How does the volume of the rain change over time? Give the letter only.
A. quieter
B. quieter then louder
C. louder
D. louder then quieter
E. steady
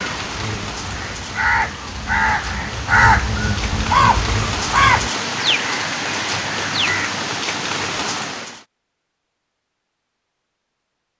C.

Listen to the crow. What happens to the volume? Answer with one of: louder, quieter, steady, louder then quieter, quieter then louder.
louder then quieter.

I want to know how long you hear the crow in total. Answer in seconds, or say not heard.
7 s.